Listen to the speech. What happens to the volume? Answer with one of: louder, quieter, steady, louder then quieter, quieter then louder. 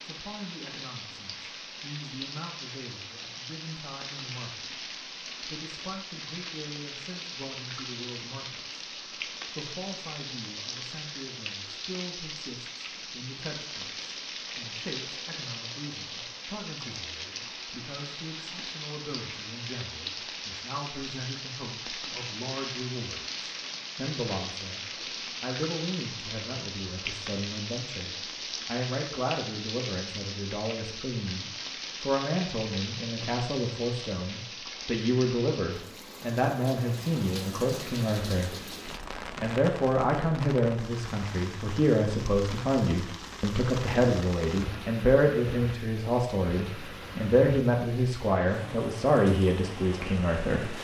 louder.